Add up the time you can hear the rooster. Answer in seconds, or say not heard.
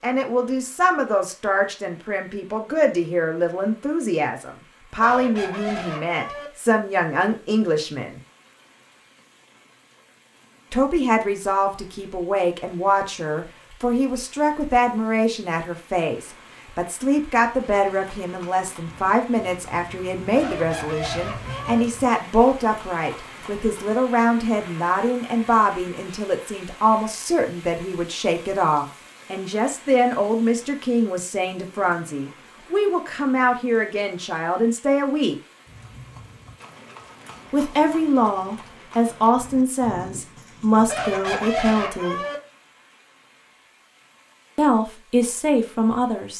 5 s.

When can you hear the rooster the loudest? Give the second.
42 s.